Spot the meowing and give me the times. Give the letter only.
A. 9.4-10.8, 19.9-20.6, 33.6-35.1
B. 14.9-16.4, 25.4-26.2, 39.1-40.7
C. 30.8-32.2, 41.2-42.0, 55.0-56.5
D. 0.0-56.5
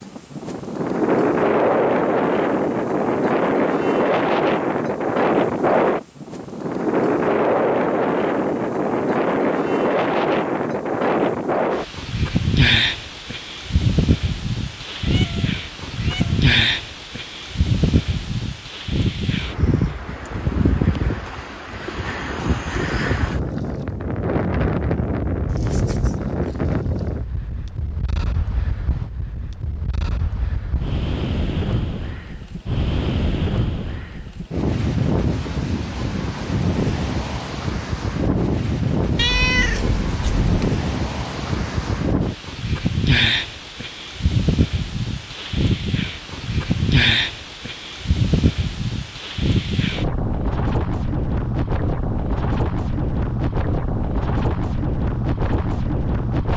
B.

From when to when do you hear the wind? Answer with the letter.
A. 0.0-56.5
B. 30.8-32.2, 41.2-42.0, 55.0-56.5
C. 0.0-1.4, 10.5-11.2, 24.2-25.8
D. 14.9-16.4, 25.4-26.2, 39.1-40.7
A.